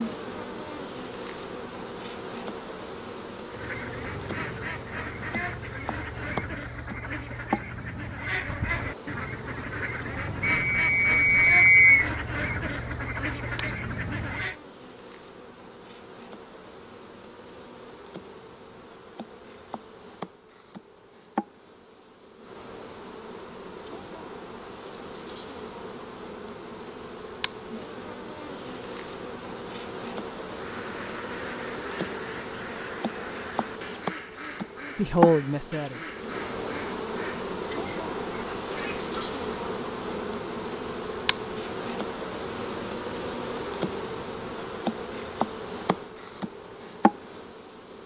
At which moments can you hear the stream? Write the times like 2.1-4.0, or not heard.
not heard.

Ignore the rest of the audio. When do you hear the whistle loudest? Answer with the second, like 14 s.
12 s.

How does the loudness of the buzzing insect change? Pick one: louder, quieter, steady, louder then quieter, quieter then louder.
quieter then louder.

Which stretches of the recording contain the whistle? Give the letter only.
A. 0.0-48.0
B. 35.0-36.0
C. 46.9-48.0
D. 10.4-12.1
D.